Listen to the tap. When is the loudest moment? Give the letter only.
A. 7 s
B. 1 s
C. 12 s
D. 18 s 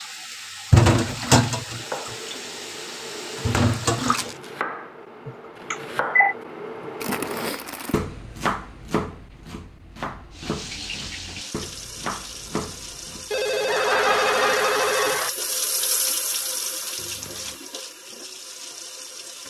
B.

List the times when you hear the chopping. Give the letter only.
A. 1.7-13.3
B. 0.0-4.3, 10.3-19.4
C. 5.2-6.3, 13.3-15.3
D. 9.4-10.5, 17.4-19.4
A.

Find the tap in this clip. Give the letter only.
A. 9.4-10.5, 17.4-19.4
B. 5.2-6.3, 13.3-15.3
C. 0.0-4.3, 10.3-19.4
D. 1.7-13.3
C.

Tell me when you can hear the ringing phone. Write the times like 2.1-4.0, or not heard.
5.2-6.3, 13.3-15.3.